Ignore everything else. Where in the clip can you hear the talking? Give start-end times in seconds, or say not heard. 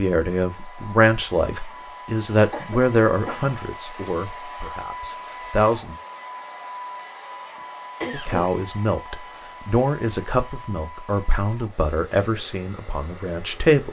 0.0-6.0, 8.1-13.8.